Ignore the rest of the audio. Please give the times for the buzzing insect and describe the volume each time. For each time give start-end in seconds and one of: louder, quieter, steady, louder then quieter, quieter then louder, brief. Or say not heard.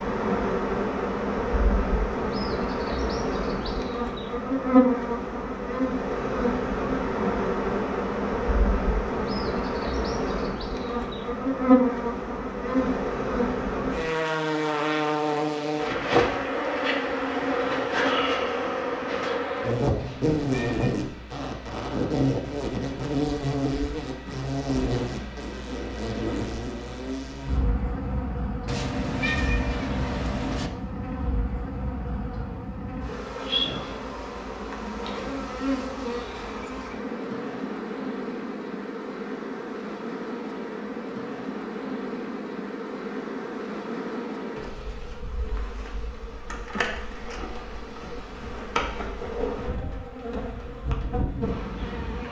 0.0-52.2 quieter.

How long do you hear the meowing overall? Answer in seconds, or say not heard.
3 s.